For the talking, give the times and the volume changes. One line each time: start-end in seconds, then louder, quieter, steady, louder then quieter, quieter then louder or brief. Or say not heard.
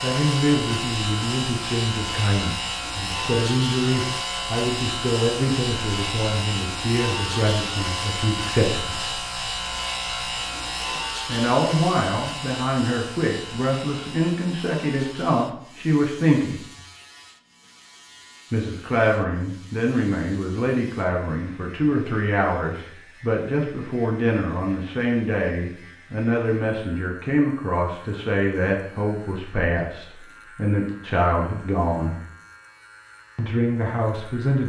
0.0-9.2 steady
11.2-16.6 steady
18.5-32.2 steady
33.4-34.6 brief.